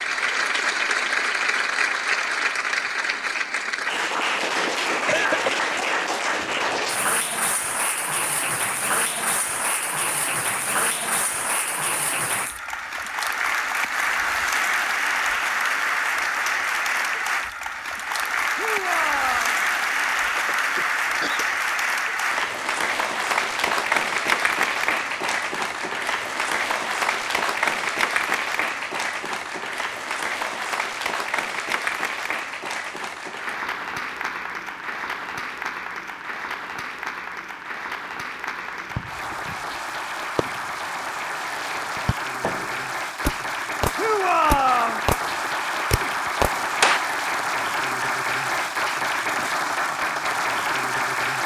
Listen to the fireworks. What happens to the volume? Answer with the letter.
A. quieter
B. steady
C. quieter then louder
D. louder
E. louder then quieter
D.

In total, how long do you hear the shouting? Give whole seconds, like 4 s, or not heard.
2 s.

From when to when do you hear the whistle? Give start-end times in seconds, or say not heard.
not heard.